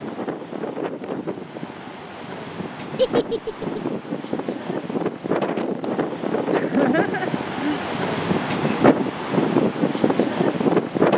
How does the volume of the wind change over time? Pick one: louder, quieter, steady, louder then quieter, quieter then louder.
louder.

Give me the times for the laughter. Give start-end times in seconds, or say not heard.
3.0-3.8, 6.5-7.8.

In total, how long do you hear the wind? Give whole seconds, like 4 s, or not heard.
11 s.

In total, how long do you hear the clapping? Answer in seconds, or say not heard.
not heard.